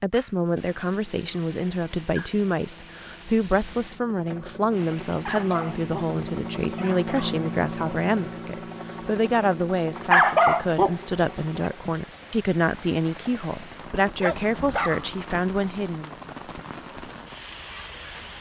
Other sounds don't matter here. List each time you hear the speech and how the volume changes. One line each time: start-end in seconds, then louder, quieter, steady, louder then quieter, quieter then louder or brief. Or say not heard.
0.0-16.1 steady.